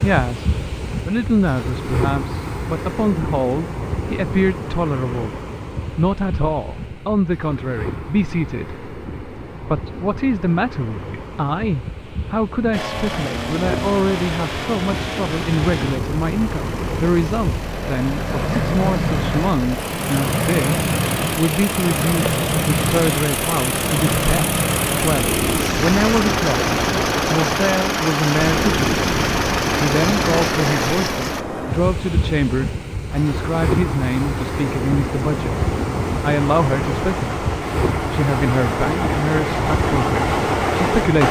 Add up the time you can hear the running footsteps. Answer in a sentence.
You can't hear the running footsteps here.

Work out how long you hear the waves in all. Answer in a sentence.
The waves can be heard for 41 seconds in total.